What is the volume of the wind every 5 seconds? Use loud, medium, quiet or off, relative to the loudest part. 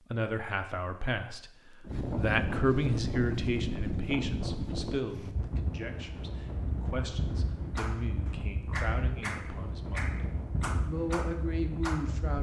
loud, medium, medium.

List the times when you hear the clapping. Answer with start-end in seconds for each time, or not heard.
7.8-12.2.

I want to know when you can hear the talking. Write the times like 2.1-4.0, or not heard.
0.1-1.5, 2.1-10.2, 10.8-12.3.